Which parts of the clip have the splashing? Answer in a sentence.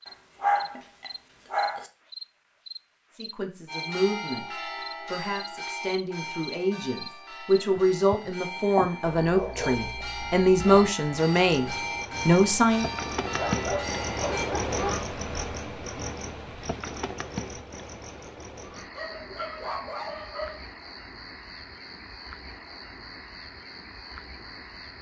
The splashing can't be heard in this clip.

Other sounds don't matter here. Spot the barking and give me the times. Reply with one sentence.
You can hear the barking from 0.1 to 1.9 s, from 9.1 to 10.9 s, from 13.3 to 14.9 s and from 18.9 to 20.6 s.